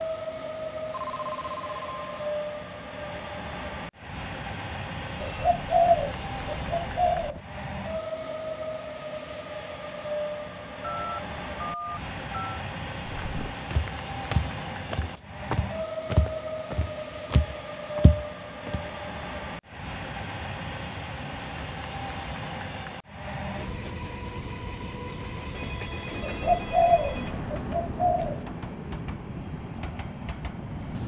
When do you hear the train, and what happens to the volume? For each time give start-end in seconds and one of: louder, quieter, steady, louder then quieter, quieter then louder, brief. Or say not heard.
0.0-31.0 steady.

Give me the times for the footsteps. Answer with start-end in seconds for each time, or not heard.
13.1-18.9.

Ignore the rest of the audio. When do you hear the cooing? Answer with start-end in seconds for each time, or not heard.
5.2-7.4, 26.2-28.4.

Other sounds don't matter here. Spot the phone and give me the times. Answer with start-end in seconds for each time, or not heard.
0.9-2.4, 10.8-12.7, 25.6-27.4.